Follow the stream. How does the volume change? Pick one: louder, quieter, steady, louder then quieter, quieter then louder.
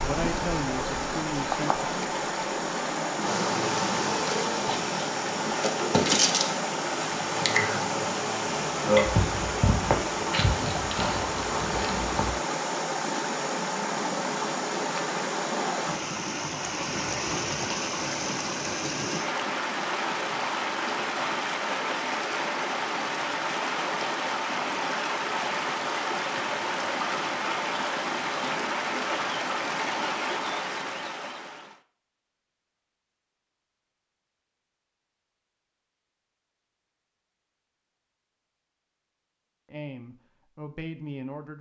steady.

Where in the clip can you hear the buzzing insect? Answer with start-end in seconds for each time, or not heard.
3.2-12.3.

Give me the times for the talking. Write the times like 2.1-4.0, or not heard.
0.0-1.9, 39.6-41.5.